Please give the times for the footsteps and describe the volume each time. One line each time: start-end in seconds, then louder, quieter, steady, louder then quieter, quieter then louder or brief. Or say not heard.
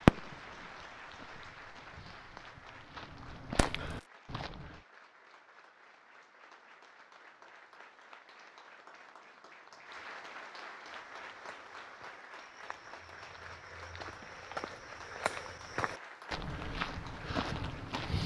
0.0-4.8 louder
10.8-18.2 louder.